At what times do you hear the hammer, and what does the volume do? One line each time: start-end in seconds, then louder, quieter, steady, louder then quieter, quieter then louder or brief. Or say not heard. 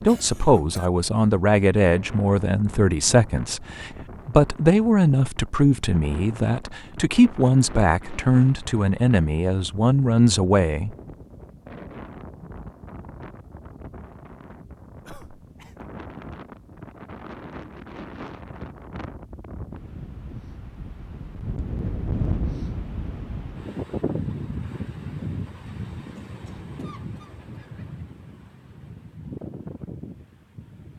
not heard.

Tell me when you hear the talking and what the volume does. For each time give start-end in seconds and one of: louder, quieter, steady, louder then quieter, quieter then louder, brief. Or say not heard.
0.0-10.9 steady.